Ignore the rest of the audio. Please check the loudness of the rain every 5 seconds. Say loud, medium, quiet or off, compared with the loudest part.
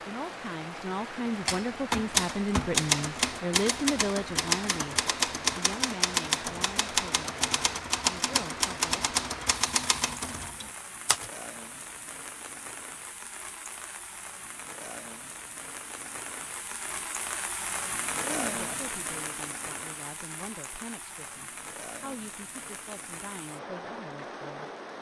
loud, loud, medium, loud, medium.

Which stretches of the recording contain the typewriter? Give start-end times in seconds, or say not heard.
1.4-11.3.